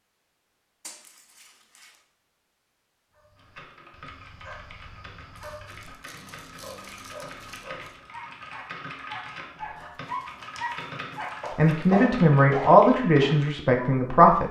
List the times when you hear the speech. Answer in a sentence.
You can hear the speech from 11.6 to 14.4 s.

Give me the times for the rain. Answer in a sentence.
The rain can't be heard in this clip.